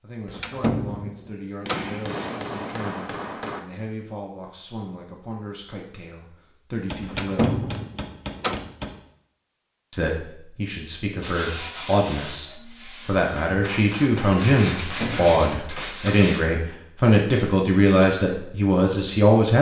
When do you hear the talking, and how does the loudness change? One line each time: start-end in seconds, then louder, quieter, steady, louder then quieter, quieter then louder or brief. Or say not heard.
0.0-7.6 steady
9.9-19.5 louder.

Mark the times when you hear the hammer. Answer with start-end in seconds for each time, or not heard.
1.6-3.6, 6.8-9.1, 13.4-15.9.